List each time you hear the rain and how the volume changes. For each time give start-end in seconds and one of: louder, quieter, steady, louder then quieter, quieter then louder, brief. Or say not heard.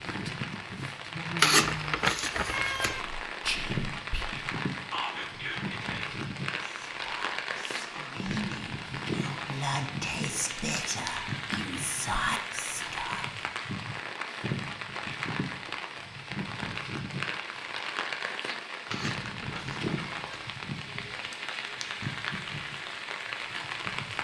0.0-24.1 steady.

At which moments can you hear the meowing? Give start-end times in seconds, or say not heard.
1.4-3.0, 18.9-20.5.